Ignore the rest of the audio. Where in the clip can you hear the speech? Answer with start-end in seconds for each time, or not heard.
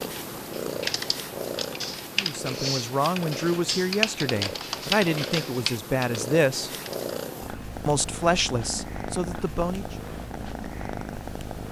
2.1-6.7, 7.8-9.9.